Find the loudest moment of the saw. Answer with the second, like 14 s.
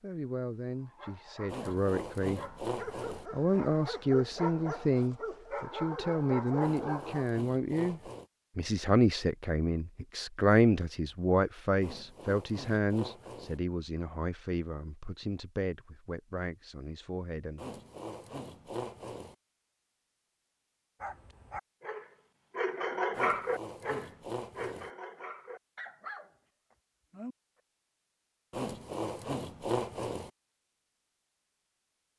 30 s.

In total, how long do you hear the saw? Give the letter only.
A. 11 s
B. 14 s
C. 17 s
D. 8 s
A.